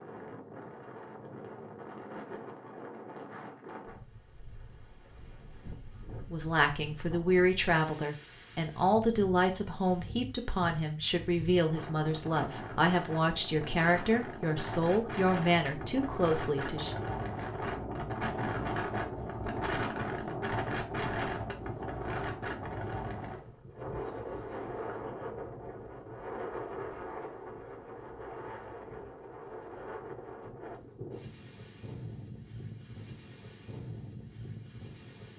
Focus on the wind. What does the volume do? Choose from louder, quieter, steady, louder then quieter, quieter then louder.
louder then quieter.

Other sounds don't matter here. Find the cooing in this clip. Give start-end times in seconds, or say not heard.
not heard.